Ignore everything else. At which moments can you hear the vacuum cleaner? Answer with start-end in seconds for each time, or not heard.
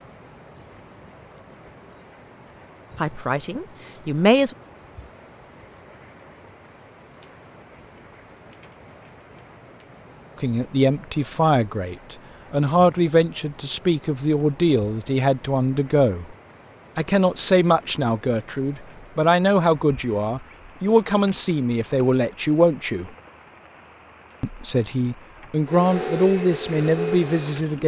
25.6-27.8.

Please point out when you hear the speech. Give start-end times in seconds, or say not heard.
3.0-4.5, 10.4-16.4, 16.9-23.1, 24.4-27.8.